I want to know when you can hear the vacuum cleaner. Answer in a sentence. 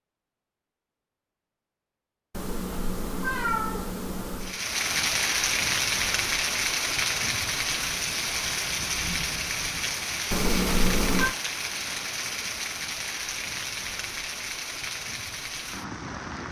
The vacuum cleaner can't be heard in this clip.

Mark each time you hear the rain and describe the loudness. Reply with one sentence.
The rain can be heard from 4.4 to 16.4 s, getting quieter.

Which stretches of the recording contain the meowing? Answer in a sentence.
You can hear the meowing from 2.3 to 4.6 s and from 10.3 to 11.3 s.